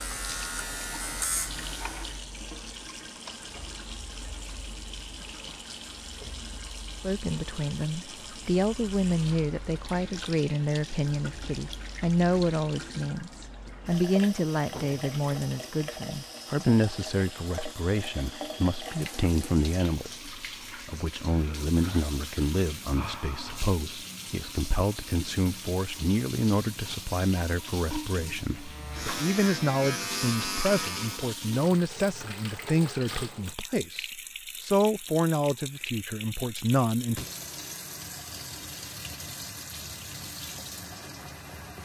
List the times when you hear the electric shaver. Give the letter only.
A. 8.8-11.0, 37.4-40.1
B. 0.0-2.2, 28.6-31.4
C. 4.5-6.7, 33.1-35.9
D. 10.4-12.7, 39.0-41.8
B.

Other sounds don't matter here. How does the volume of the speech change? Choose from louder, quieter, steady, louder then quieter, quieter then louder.
steady.